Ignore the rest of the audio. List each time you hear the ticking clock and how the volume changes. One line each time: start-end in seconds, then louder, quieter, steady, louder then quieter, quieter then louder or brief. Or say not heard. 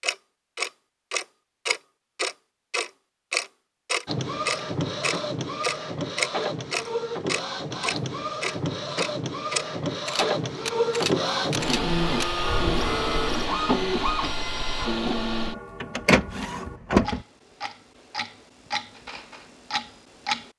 0.0-20.5 quieter.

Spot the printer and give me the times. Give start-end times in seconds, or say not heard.
4.0-17.2.